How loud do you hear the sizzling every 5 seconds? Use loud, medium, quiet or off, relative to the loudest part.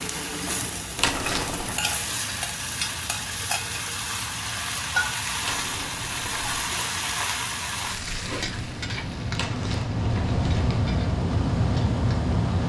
loud, loud, quiet.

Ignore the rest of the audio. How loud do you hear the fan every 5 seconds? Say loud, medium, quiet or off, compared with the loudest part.
quiet, medium, loud.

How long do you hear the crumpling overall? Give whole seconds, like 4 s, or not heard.
4 s.